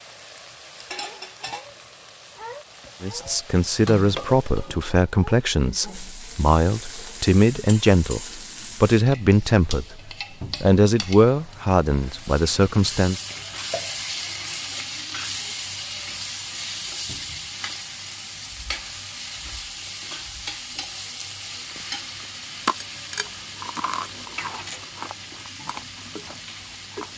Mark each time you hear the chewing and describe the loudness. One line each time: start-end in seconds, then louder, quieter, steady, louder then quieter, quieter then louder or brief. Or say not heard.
19.8-27.1 louder then quieter.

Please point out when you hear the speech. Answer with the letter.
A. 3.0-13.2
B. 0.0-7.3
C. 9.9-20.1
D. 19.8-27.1
A.